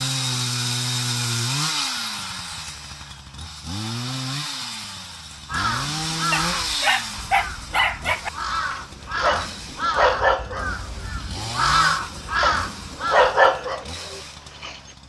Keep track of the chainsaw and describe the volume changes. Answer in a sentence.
The volume of the chainsaw goes down.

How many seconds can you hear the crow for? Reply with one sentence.
You can hear the crow for 8 seconds altogether.